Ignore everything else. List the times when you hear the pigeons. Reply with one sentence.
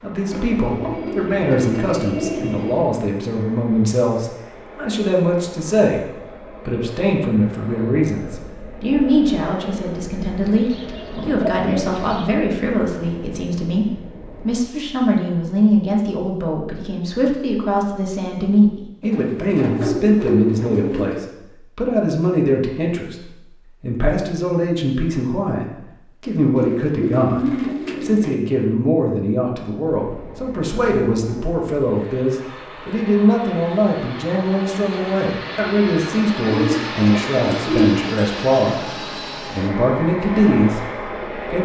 The pigeons can be heard from 0.3 to 3.0 s, from 10.4 to 12.3 s, from 19.0 to 21.2 s, from 26.6 to 28.4 s and from 36.5 to 38.2 s.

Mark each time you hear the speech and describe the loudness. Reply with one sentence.
The speech can be heard from 0.0 to 27.4 s, at a steady volume; and from 28.0 to 41.6 s, at a steady volume.